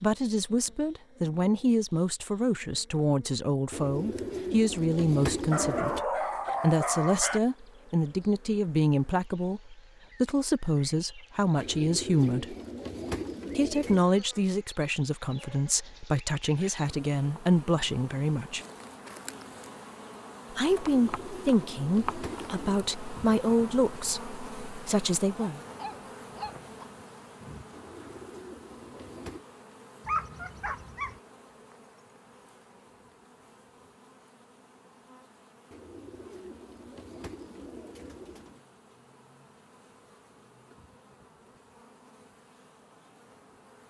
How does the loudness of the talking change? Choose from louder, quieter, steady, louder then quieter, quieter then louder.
steady.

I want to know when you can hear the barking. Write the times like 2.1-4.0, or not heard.
5.5-7.4, 25.6-26.9, 30.1-31.2.